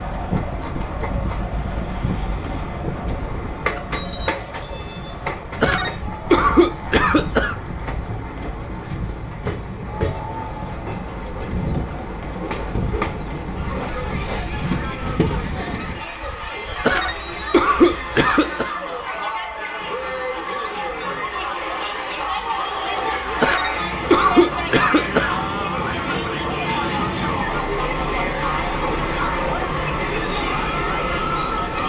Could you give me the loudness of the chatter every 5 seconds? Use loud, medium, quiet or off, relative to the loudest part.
medium, quiet, medium, medium, loud, loud, loud.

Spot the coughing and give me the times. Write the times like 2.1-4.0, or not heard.
5.6-7.5, 16.8-18.7, 23.4-25.4.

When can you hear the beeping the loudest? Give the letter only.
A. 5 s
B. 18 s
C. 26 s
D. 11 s
A.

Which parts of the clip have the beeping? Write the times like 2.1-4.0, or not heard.
3.9-5.3, 17.2-18.6.